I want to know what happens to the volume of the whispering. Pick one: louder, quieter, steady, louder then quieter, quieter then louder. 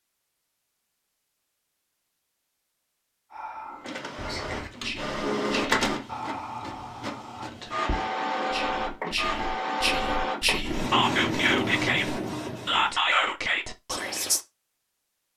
louder.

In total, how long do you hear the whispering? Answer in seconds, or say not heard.
11 s.